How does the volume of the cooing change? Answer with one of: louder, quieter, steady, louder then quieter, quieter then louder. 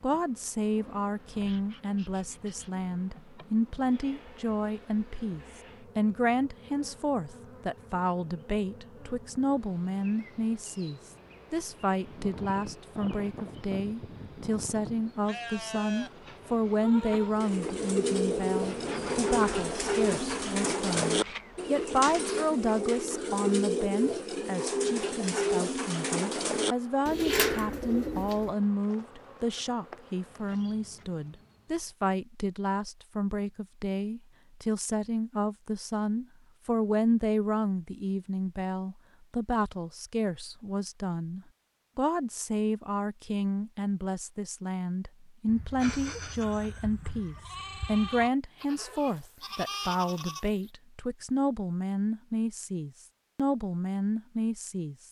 steady.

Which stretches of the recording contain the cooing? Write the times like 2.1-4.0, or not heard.
17.3-28.6.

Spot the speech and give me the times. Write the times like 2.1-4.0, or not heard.
0.0-55.0.